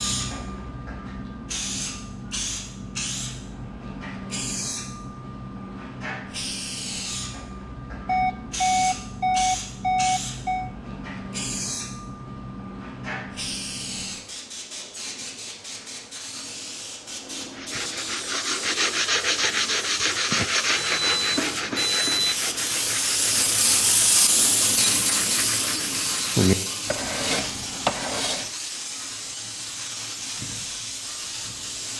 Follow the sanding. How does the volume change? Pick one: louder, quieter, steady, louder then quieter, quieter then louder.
quieter then louder.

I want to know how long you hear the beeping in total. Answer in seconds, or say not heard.
4 s.